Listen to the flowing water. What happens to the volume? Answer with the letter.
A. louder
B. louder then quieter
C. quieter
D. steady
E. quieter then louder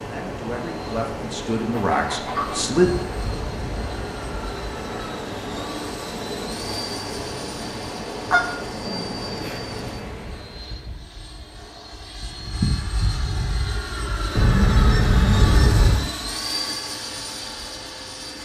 D.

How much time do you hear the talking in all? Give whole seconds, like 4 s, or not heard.
3 s.